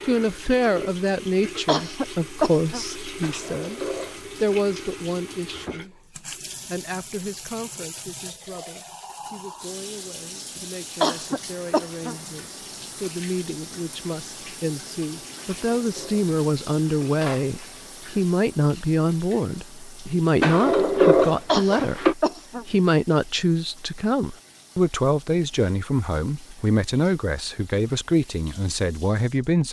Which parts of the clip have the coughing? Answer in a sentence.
You can hear the coughing from 1.6 to 2.9 s, from 11.0 to 12.2 s and from 21.4 to 22.6 s.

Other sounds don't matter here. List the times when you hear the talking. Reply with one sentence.
The talking can be heard from 0.0 to 29.6 s.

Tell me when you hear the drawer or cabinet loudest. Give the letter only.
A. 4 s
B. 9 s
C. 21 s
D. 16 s
C.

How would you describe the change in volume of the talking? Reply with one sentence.
The loudness of the talking goes down, then up.